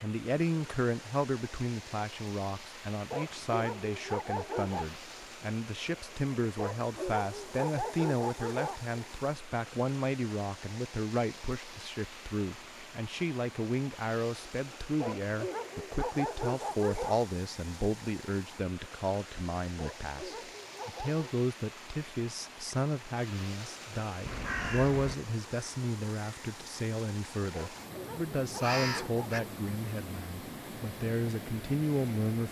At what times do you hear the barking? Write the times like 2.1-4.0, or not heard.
3.1-5.0, 6.5-8.9, 15.0-17.2, 19.8-21.4, 27.5-29.3.